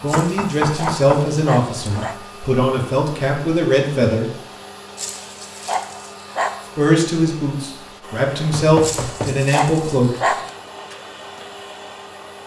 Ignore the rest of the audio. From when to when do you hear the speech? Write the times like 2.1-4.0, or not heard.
0.0-4.3, 6.8-10.1.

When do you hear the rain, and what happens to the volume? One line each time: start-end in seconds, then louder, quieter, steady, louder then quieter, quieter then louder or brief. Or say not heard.
not heard.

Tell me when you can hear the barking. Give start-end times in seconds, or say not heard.
0.1-2.1, 5.0-6.7, 8.8-10.5.